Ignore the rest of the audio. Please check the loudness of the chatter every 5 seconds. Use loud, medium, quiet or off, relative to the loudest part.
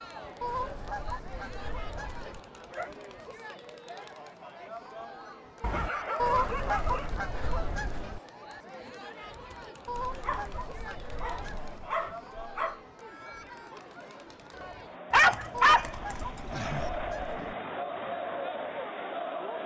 medium, medium, medium, loud.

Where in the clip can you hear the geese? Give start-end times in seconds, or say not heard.
0.4-2.4, 6.2-8.2, 9.8-11.9, 15.5-17.6.